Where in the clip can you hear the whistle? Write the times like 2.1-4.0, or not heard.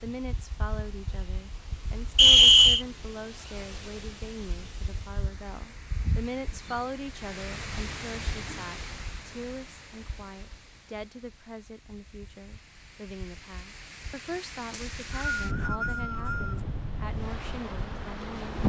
2.1-2.9, 14.7-16.6.